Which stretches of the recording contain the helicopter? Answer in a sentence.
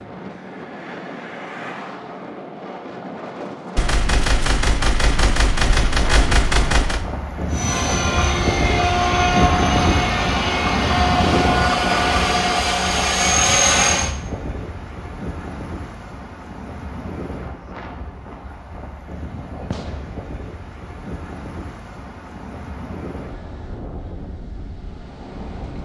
You can hear the helicopter from 7.5 to 14.1 s.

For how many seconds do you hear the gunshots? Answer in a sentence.
The gunshots can be heard for 4 seconds in total.